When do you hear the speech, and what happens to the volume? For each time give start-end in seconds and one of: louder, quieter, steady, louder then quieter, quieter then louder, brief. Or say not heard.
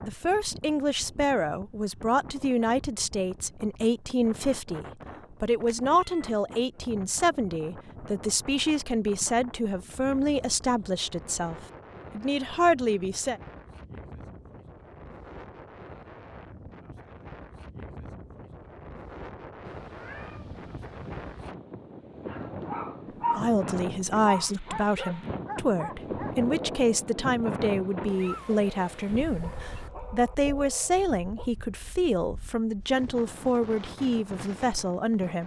0.0-13.4 steady
23.4-35.4 steady.